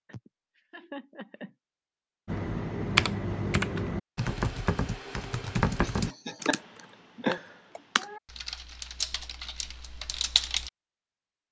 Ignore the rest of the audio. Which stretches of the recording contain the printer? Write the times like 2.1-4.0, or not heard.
not heard.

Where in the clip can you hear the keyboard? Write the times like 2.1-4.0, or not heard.
2.2-10.7.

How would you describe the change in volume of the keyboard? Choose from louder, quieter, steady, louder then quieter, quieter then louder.
quieter.